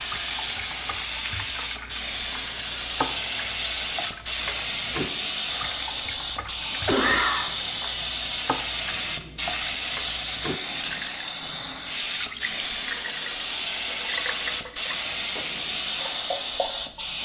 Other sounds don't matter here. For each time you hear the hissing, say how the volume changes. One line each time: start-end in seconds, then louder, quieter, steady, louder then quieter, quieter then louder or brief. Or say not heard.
0.0-17.1 steady.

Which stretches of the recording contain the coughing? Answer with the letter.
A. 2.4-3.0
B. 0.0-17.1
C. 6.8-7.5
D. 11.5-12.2
C.